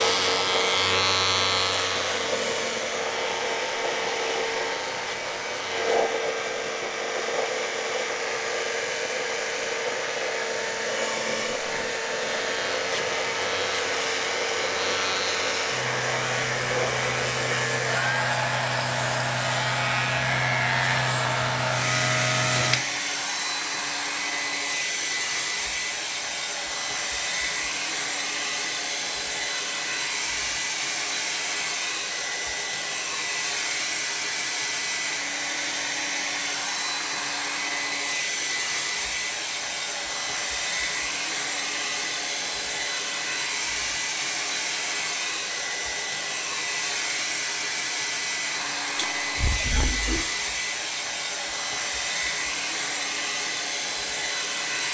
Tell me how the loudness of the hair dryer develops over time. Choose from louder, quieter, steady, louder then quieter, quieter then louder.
steady.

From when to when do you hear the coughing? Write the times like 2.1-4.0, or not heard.
49.0-50.2.